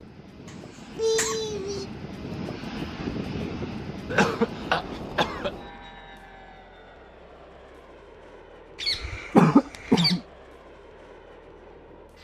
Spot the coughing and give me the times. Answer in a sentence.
The coughing can be heard from 0.5 to 1.9 s, from 4.1 to 5.7 s and from 8.8 to 10.2 s.